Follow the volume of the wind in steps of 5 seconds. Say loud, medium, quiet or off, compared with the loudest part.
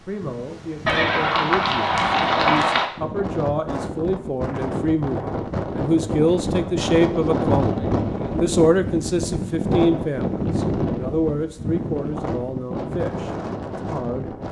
medium, loud, loud.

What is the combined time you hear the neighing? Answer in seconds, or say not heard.
2 s.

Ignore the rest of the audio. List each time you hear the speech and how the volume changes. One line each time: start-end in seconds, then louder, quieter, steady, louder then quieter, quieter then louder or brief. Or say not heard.
0.0-7.8 louder
8.4-14.3 quieter.